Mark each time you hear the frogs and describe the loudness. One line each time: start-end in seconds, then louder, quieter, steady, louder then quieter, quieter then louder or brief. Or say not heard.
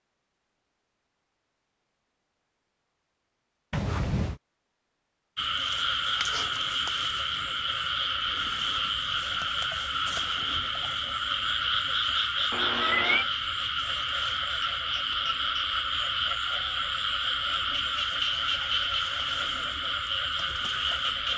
5.3-21.3 steady.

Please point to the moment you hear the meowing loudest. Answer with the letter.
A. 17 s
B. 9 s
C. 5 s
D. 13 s
D.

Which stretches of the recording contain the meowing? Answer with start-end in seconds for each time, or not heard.
3.7-4.4, 12.5-13.2.